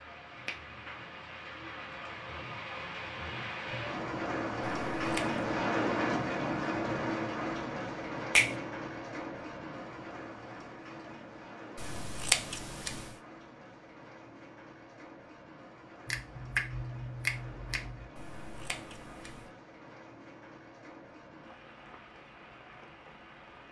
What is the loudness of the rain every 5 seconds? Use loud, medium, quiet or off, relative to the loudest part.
medium, loud, quiet, quiet, quiet.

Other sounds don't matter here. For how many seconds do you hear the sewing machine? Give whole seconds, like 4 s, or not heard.
not heard.